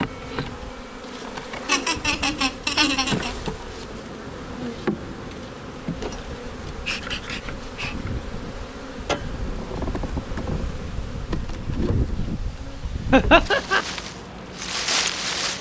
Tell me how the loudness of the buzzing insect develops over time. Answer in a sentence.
The volume of the buzzing insect goes down.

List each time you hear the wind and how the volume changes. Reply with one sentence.
You can hear the wind from 0.0 to 15.5 s, getting louder.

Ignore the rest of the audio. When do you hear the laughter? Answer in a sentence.
The laughter can be heard from 1.6 to 3.4 s and from 13.1 to 13.8 s.